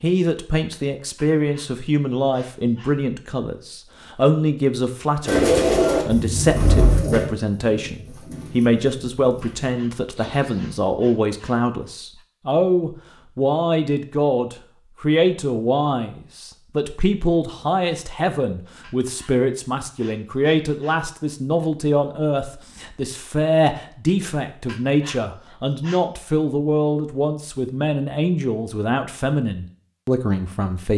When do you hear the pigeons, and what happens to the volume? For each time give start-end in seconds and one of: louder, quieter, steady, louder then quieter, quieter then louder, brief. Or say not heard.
5.2-10.7 quieter.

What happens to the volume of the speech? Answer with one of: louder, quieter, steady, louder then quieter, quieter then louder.
steady.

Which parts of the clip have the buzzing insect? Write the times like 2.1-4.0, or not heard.
not heard.